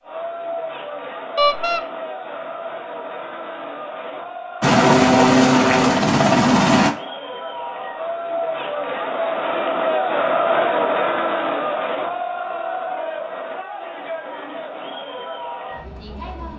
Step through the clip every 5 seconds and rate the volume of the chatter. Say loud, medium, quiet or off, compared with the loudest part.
medium, loud, loud, medium.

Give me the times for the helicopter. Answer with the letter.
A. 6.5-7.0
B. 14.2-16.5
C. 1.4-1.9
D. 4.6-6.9
D.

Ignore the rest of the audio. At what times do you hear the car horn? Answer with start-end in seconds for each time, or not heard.
1.4-1.9.